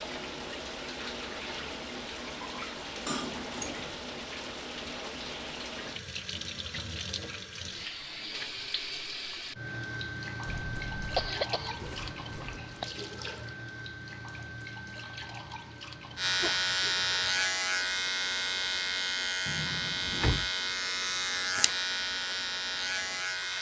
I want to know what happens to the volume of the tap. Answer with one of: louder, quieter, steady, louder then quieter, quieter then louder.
quieter.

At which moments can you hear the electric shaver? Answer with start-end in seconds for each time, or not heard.
16.1-23.5.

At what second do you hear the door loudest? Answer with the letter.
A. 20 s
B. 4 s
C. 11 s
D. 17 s
A.